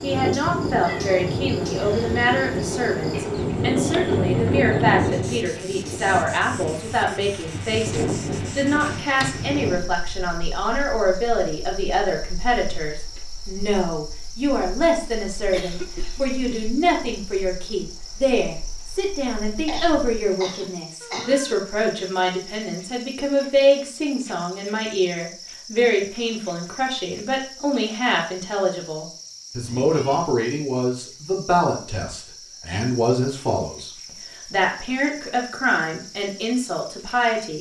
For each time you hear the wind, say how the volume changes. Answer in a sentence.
You can hear the wind from 0.0 to 20.2 s, getting quieter.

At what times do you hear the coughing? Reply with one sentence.
The coughing can be heard from 15.5 to 17.1 s and from 19.6 to 21.4 s.